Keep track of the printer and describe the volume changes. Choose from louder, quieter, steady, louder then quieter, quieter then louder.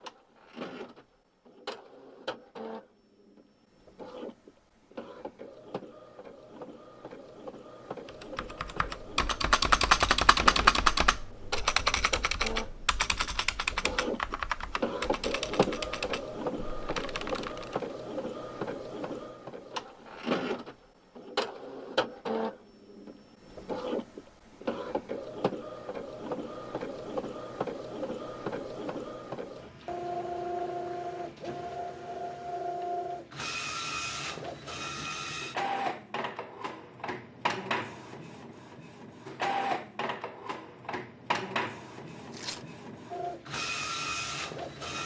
louder.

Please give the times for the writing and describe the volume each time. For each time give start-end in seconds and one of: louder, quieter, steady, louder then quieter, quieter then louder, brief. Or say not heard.
not heard.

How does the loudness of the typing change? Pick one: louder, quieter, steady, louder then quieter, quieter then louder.
quieter.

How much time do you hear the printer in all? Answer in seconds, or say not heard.
45 s.